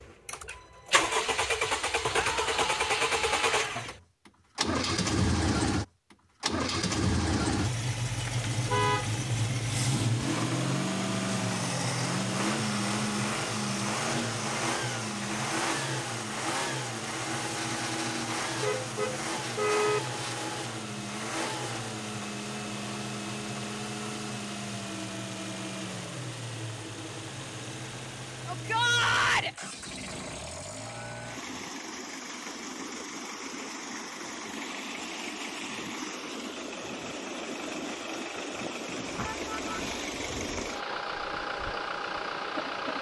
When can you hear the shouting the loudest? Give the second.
29 s.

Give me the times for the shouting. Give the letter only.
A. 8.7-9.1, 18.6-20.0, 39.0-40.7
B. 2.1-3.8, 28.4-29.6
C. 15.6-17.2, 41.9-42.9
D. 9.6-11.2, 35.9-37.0
B.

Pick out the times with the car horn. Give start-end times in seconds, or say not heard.
8.7-9.1, 18.6-20.0, 39.0-40.7.